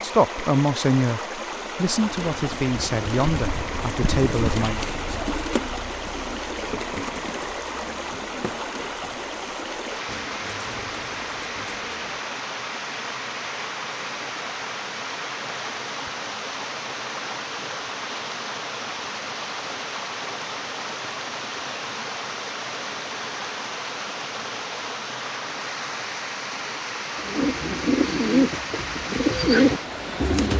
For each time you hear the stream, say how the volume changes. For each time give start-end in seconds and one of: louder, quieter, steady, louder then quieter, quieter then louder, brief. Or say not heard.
0.0-30.5 steady.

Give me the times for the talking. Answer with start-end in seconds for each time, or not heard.
0.0-4.8.